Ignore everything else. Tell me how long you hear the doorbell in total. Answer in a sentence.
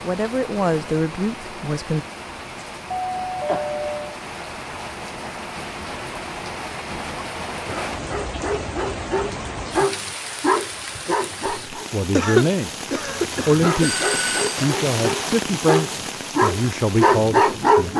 You can hear the doorbell for 2 seconds altogether.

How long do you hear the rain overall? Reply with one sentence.
You can hear the rain for 18 seconds altogether.